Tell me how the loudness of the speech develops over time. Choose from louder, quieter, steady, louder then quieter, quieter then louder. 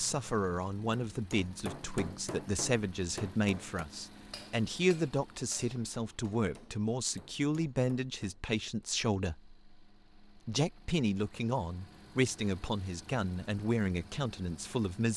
steady.